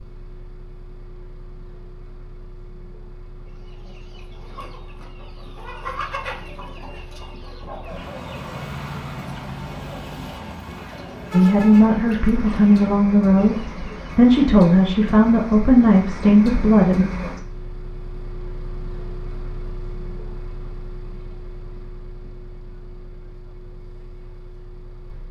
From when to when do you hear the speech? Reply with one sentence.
The speech can be heard from 11.3 to 17.1 s.